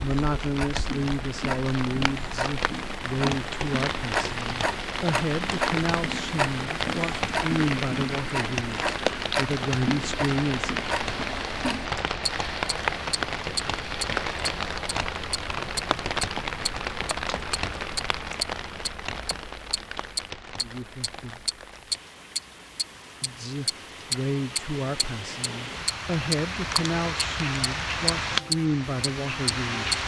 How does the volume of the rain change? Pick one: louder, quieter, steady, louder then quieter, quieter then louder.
quieter then louder.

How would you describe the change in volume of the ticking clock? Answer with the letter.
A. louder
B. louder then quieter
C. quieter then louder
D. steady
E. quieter
A.